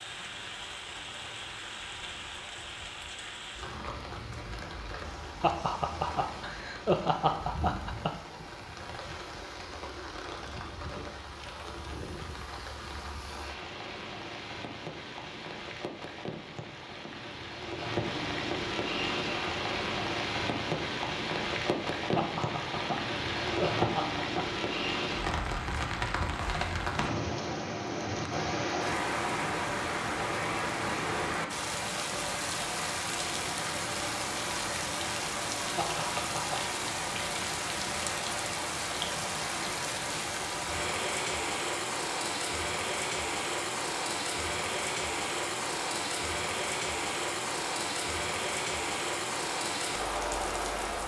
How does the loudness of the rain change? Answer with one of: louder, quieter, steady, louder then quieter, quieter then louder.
louder.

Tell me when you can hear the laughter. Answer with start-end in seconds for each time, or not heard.
5.4-8.1, 22.1-24.4, 35.8-36.8.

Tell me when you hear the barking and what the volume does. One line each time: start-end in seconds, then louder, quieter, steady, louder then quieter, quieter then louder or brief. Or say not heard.
not heard.